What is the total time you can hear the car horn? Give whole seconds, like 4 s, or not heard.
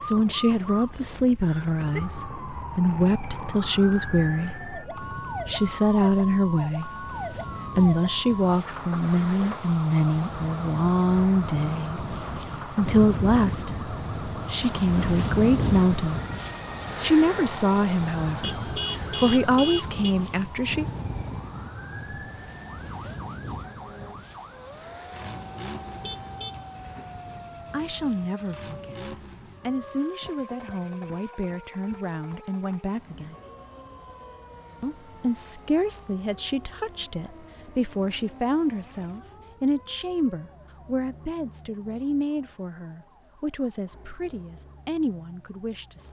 3 s.